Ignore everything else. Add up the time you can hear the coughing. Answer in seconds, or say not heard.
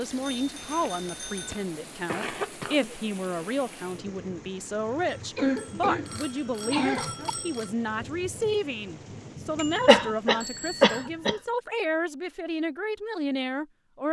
6 s.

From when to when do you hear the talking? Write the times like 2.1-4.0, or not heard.
0.0-14.0.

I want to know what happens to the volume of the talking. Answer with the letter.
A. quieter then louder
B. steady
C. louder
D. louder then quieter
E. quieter
B.